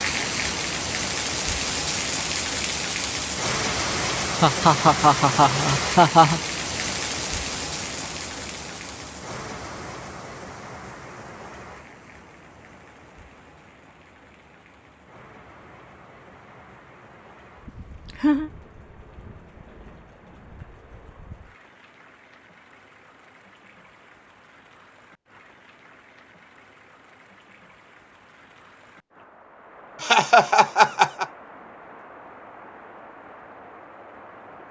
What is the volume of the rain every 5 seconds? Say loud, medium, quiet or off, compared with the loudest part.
loud, loud, quiet, quiet, quiet, quiet, quiet.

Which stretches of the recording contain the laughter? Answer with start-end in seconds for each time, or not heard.
4.4-6.4, 17.6-18.5, 30.0-31.2.